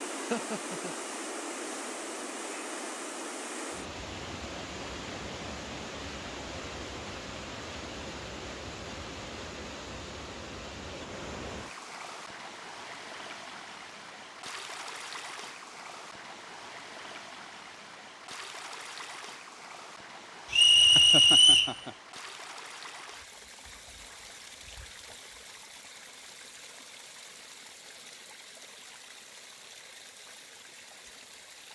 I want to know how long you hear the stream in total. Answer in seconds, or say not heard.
32 s.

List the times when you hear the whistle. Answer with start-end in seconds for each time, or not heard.
20.5-21.8.